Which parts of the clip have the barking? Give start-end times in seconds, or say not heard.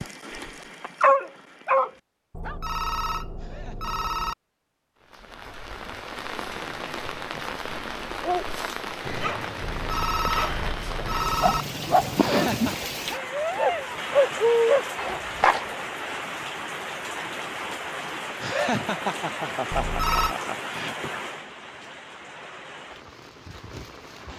0.0-2.5, 8.2-15.7.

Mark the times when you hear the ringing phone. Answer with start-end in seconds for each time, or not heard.
2.3-4.3, 9.6-11.7, 19.7-20.4.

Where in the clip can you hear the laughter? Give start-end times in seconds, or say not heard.
3.4-4.3, 12.2-12.9, 18.4-21.1.